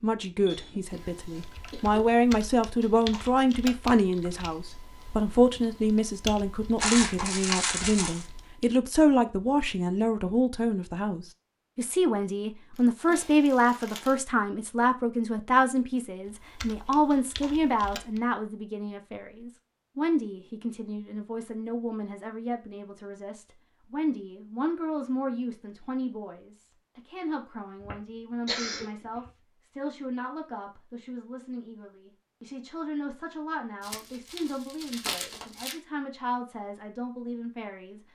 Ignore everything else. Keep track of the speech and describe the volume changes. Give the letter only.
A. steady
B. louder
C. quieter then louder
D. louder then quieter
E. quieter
E.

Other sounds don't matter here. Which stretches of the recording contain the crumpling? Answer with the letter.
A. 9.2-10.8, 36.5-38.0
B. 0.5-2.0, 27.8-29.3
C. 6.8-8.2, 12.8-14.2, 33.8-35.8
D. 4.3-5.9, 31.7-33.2
C.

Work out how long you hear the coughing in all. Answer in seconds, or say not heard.
3 s.